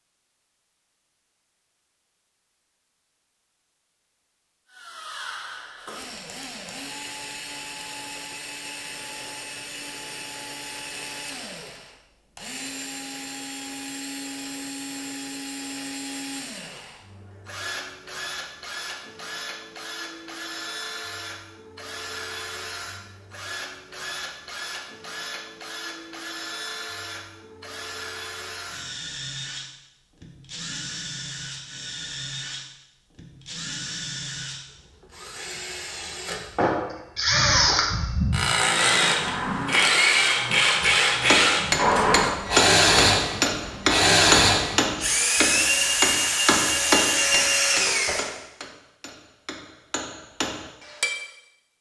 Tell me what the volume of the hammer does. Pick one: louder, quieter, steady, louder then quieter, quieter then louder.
quieter.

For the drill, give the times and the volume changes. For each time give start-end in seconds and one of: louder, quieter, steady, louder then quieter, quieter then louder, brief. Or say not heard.
4.7-48.3 louder.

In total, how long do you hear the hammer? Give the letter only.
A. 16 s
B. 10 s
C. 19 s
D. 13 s
B.